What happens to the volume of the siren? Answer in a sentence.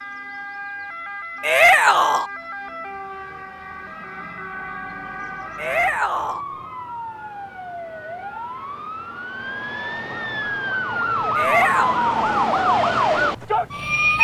The volume of the siren goes up.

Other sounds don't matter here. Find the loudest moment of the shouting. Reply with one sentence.
The volume of the shouting peaks at 2 seconds.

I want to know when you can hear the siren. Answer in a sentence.
The siren can be heard from 0.0 to 14.2 s.